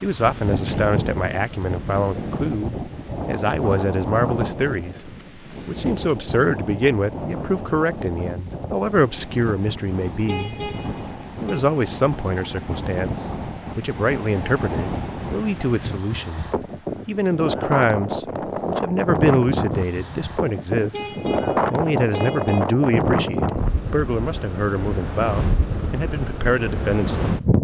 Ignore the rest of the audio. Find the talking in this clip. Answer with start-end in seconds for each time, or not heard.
0.0-10.6, 11.4-16.4, 17.1-21.1, 21.7-27.4.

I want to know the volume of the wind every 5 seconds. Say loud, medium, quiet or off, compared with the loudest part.
loud, medium, medium, loud, loud, loud.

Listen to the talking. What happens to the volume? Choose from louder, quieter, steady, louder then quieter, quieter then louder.
steady.